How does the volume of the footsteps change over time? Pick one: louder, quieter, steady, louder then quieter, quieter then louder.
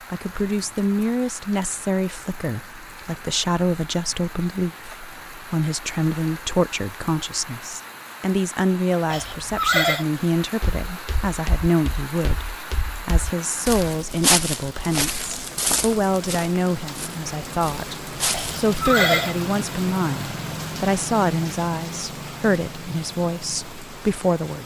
louder then quieter.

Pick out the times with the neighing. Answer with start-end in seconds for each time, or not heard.
9.1-10.1, 18.3-19.4.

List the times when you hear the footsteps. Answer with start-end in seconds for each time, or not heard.
10.6-18.6.